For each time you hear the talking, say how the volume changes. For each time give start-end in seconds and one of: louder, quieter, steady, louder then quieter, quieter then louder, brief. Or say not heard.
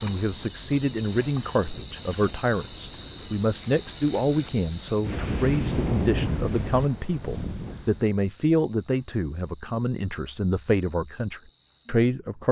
0.0-12.4 steady.